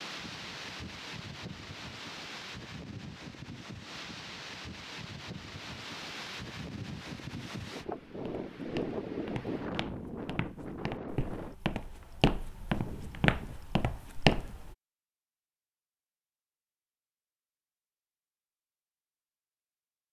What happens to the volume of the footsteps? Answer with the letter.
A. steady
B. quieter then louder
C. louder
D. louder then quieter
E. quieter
C.